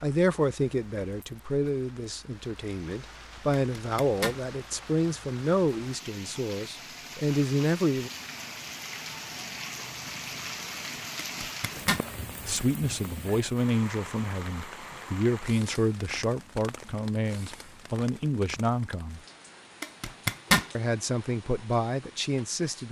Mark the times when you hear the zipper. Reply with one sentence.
The zipper can be heard from 3.8 to 4.4 s, from 11.2 to 12.1 s and from 19.8 to 20.6 s.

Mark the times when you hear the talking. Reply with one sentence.
You can hear the talking from 0.0 to 8.1 s, from 12.4 to 19.2 s and from 20.8 to 22.8 s.